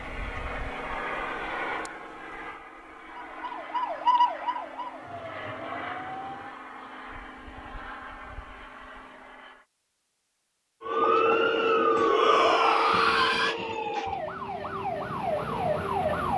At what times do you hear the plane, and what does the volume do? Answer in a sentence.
The plane can be heard from 0.0 to 9.7 s, getting quieter.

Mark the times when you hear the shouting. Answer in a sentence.
You can hear the shouting from 12.1 to 13.6 s.